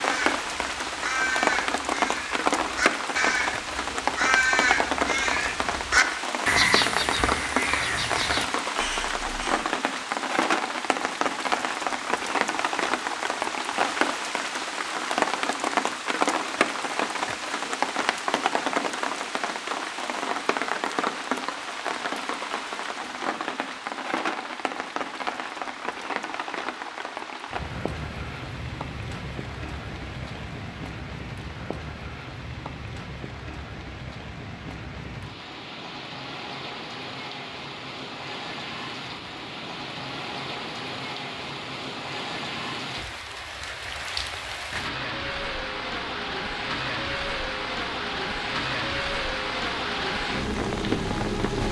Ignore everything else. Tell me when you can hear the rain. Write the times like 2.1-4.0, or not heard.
0.0-51.6.